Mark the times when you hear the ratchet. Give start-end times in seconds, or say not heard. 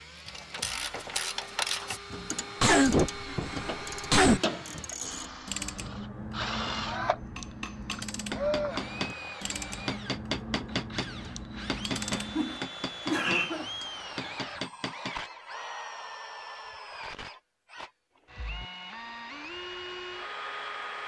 0.2-12.6.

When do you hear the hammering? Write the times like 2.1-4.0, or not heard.
7.3-15.2.